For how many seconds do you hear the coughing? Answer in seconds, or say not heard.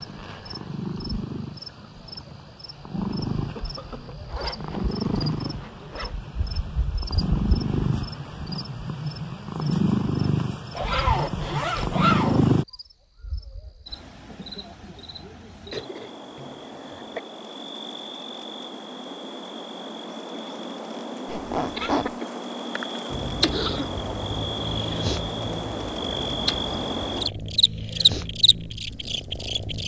4 s.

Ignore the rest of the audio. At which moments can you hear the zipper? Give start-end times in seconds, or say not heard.
4.2-6.2, 10.8-12.4, 21.2-22.1.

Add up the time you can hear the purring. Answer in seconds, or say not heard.
19 s.